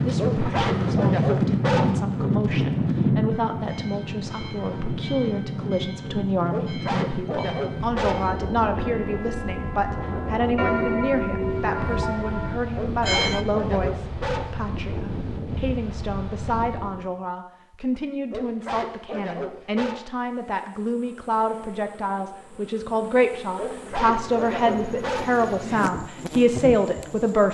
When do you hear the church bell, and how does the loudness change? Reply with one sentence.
The church bell can be heard from 3.3 to 13.4 s, getting louder.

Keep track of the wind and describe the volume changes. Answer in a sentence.
The volume of the wind goes down.